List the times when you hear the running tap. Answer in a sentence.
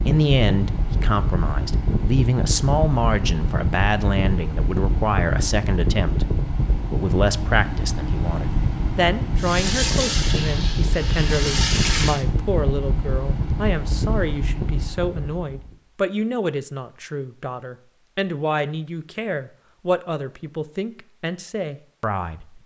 You can hear the running tap from 9.3 to 12.2 s.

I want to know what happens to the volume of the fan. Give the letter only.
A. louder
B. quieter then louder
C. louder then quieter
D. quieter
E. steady
E.